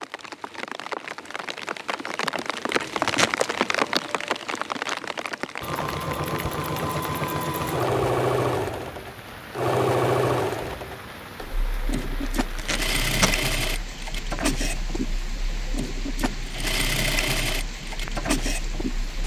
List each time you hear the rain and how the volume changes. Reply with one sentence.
The rain can be heard from 0.0 to 19.2 s, getting quieter.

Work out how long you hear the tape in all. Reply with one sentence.
You can hear the tape for 2 seconds altogether.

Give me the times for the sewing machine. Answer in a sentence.
You can hear the sewing machine from 5.6 to 19.2 s.